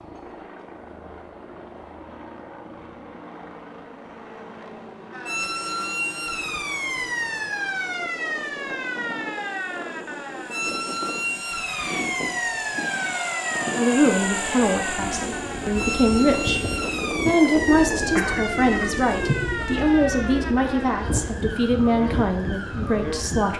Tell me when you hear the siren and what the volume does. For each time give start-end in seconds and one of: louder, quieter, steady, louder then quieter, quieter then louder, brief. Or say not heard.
5.1-23.5 steady.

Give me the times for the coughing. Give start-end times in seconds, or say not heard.
18.1-19.4.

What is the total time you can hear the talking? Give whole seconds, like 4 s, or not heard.
9 s.